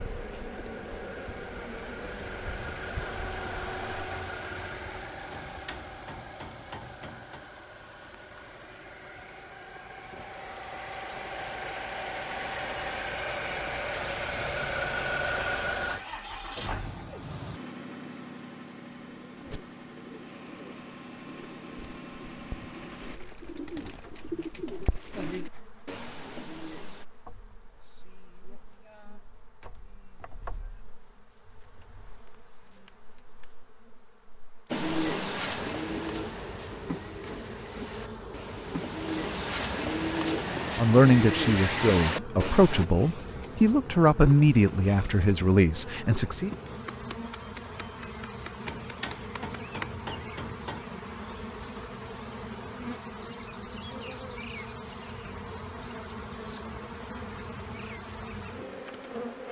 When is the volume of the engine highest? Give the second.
15 s.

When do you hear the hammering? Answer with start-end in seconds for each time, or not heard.
5.3-7.5, 48.6-50.9.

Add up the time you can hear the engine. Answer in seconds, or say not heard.
23 s.